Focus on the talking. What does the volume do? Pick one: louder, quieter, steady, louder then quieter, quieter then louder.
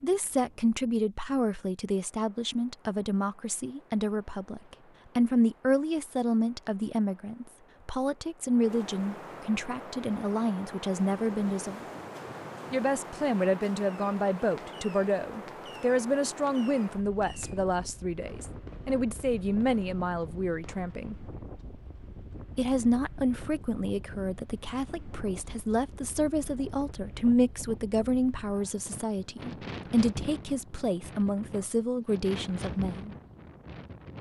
steady.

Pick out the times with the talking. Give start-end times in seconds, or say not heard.
0.0-11.8, 12.7-21.1, 22.6-33.1.